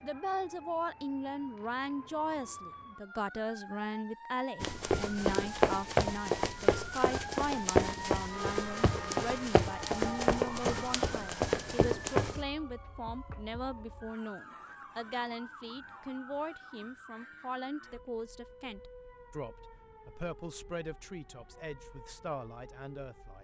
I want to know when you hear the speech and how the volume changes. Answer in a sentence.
You can hear the speech from 0.0 to 23.3 s, getting quieter.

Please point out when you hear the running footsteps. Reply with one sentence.
You can hear the running footsteps from 4.6 to 12.4 s.